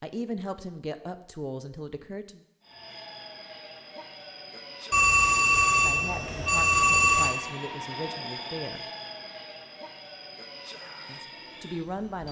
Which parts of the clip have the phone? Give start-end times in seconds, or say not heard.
4.9-7.3.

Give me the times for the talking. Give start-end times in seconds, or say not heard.
0.0-2.4, 5.8-8.8, 11.1-12.2.